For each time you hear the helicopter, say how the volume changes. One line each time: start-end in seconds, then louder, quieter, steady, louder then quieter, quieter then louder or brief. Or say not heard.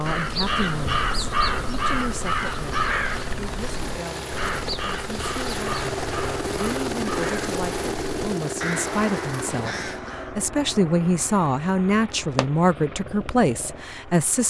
0.0-14.4 louder then quieter.